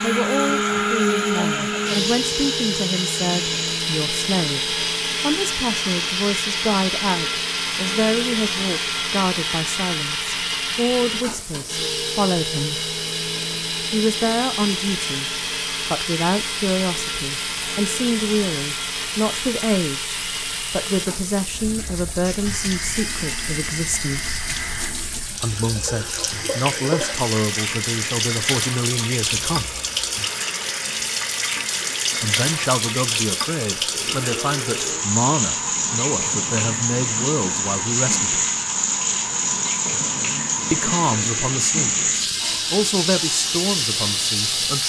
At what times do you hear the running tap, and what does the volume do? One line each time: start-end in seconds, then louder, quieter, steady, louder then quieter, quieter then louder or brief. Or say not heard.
0.0-44.8 louder.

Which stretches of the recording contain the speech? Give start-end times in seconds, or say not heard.
0.0-12.8, 13.9-24.4, 25.4-29.8, 32.2-38.5, 40.7-42.0, 42.7-44.8.